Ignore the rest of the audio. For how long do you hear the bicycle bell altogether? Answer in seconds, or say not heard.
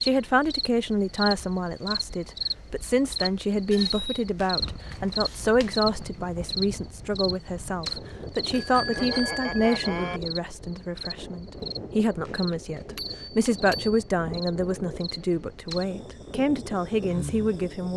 4 s.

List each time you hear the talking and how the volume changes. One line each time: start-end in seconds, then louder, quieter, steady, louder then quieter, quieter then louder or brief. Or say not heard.
0.0-17.9 steady.